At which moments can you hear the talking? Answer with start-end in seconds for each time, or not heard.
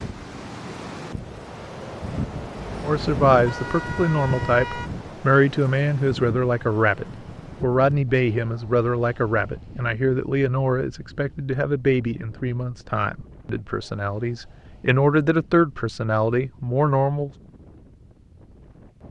2.9-17.3.